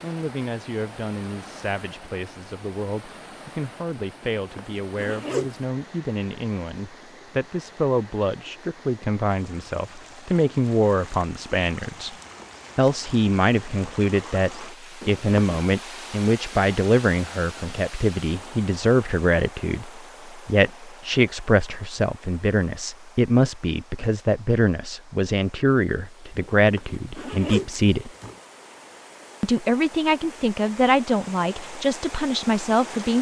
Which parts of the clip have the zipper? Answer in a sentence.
You can hear the zipper from 4.2 to 5.6 s, from 15.0 to 15.6 s and from 26.6 to 28.4 s.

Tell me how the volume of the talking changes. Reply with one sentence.
The loudness of the talking goes up.